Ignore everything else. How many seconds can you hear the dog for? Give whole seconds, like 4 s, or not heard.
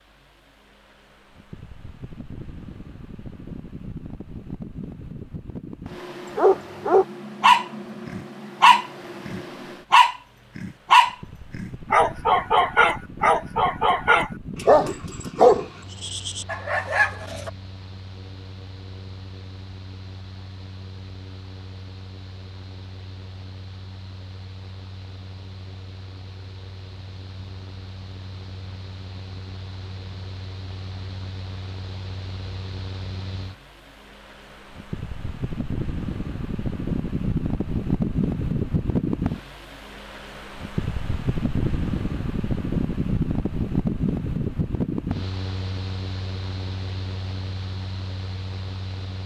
11 s.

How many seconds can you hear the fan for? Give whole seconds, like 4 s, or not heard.
49 s.